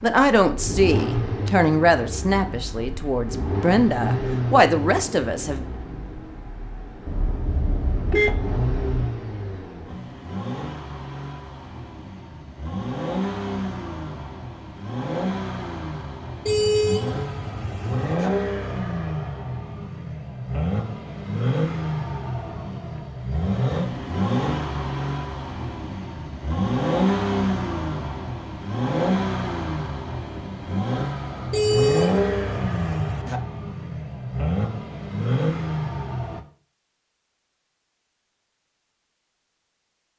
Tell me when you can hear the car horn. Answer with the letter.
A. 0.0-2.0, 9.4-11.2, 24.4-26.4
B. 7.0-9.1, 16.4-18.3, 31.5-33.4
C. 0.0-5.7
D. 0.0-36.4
B.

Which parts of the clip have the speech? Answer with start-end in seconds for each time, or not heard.
0.0-5.7.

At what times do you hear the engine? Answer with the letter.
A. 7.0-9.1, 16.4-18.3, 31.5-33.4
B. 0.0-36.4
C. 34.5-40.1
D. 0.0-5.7
B.